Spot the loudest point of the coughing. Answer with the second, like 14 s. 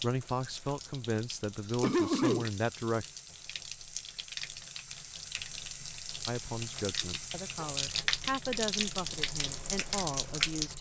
2 s.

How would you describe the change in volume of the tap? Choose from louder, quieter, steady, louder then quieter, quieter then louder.
louder.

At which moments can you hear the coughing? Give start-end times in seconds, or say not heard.
1.8-2.5, 7.0-8.1.